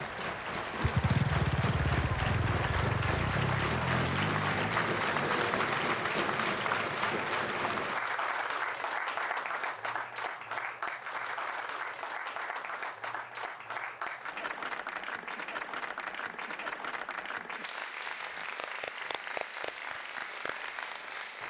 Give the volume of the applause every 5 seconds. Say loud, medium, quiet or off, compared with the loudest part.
loud, loud, medium, medium, medium.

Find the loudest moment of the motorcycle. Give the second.
1 s.